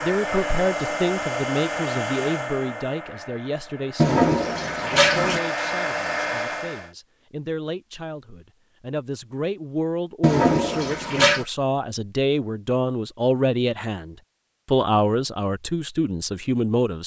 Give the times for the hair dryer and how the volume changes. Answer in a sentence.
You can hear the hair dryer from 0.0 to 6.9 s, getting quieter then louder.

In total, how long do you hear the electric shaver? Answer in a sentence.
You can't hear the electric shaver here.